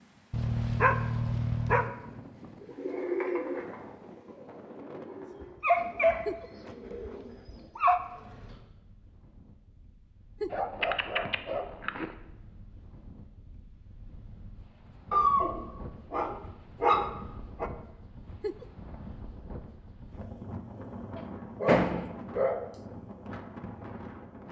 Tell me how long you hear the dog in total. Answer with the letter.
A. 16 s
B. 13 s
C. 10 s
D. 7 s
C.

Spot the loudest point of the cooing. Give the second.
3 s.